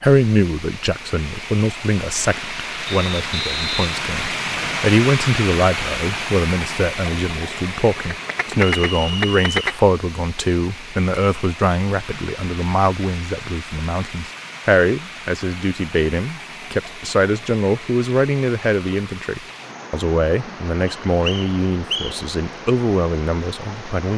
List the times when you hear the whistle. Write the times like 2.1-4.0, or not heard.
2.9-4.9, 8.8-9.6, 20.9-22.1.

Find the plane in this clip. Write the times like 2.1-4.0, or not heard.
not heard.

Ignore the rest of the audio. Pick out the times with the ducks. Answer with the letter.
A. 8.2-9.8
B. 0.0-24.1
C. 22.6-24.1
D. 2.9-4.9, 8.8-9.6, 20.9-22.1
A.